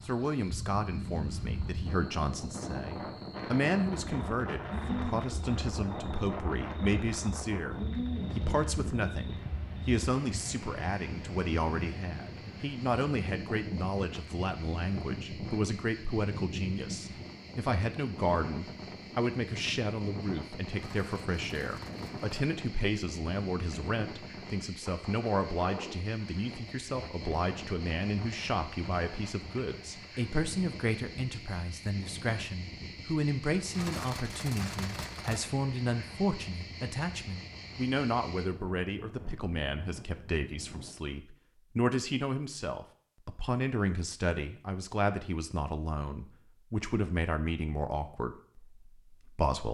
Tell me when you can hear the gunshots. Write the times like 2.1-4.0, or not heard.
20.8-22.6, 33.7-35.5.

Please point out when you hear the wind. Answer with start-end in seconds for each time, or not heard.
0.0-41.0.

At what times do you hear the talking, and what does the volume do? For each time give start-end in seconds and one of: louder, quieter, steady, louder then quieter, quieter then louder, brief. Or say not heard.
0.0-49.7 steady.